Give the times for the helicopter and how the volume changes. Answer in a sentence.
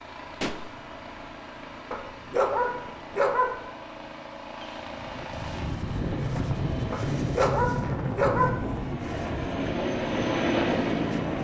You can hear the helicopter from 0.0 to 11.4 s, getting louder.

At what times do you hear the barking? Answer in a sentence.
You can hear the barking from 1.9 to 3.7 s and from 6.9 to 8.7 s.